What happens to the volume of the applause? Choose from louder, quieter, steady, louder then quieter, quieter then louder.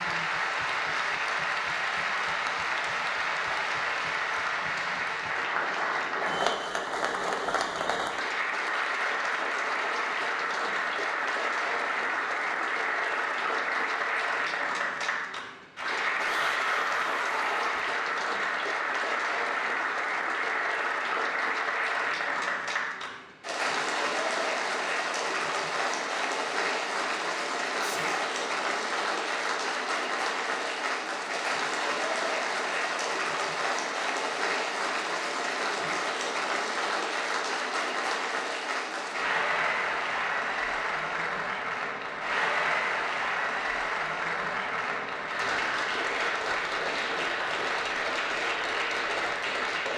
steady.